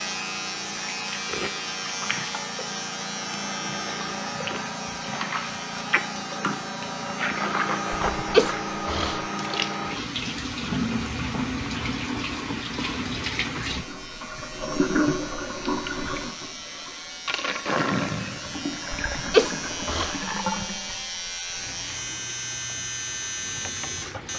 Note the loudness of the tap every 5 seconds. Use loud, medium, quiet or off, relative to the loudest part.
medium, loud, loud, loud, medium.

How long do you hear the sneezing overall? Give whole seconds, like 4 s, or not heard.
2 s.